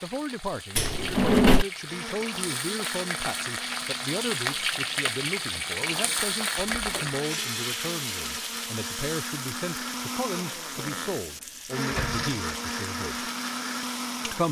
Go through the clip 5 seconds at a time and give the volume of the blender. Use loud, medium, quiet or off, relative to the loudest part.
medium, medium, loud.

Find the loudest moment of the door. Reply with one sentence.
The volume of the door peaks at 1 second.